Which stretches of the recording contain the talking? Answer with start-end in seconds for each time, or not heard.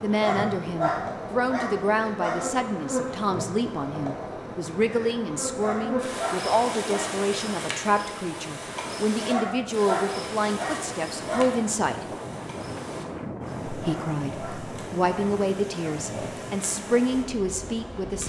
0.0-12.0, 13.7-18.2.